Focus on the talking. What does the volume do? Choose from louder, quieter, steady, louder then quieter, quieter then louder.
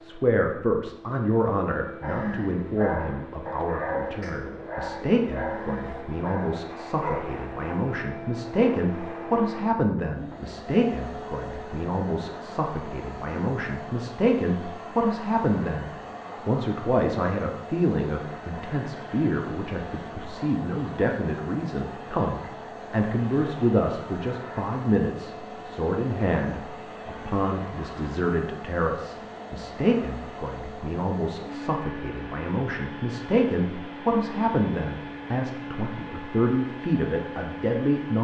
steady.